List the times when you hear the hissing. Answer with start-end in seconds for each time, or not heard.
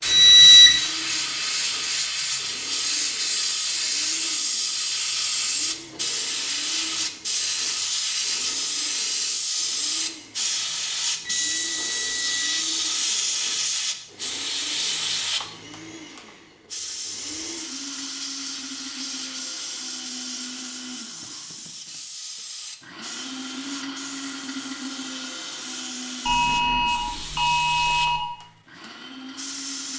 0.0-29.9.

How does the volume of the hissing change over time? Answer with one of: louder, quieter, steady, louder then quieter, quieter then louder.
quieter.